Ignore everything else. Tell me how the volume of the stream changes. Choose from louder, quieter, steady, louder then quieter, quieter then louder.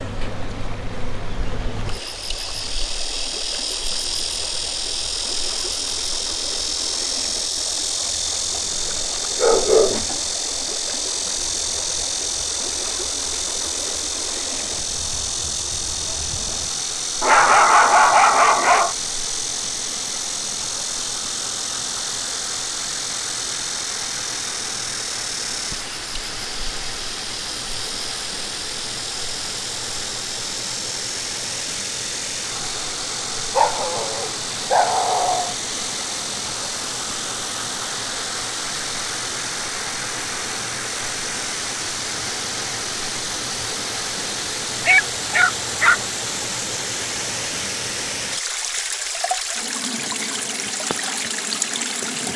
louder.